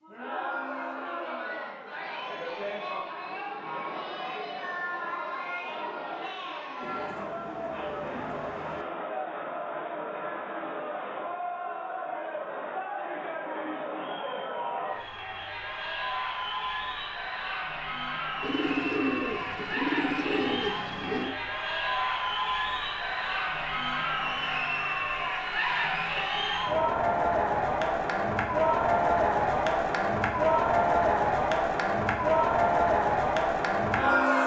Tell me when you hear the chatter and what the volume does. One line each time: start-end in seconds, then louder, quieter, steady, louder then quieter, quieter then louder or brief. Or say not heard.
0.0-34.4 louder.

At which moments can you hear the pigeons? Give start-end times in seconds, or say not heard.
6.8-8.8, 18.4-21.4.